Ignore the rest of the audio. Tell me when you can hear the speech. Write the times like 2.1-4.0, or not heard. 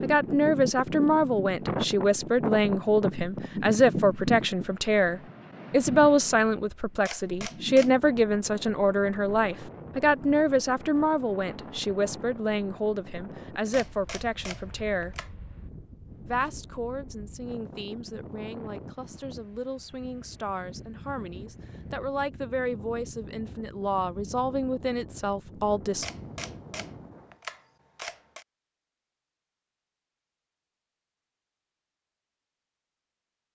0.0-15.2, 16.2-26.1.